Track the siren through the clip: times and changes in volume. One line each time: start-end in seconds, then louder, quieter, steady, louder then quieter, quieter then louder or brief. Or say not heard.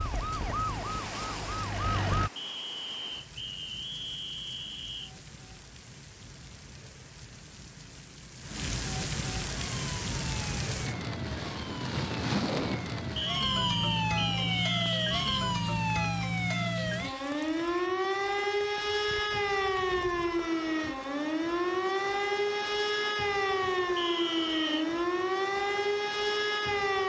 0.0-2.3 brief
9.4-27.0 louder.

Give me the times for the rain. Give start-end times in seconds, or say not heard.
0.0-27.0.